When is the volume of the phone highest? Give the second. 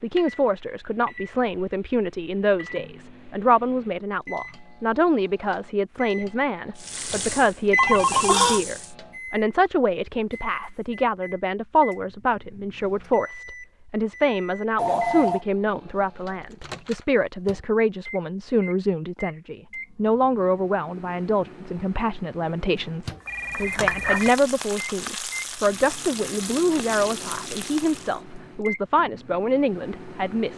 8 s.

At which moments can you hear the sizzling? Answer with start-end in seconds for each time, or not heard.
6.8-8.9, 23.2-28.2.